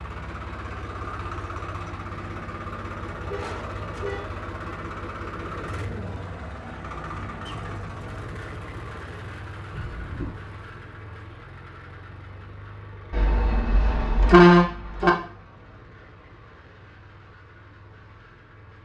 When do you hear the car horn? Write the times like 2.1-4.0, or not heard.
3.1-4.3, 9.7-10.4, 13.1-15.1.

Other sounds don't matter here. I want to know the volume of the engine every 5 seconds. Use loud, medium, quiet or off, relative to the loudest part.
loud, loud, medium, quiet.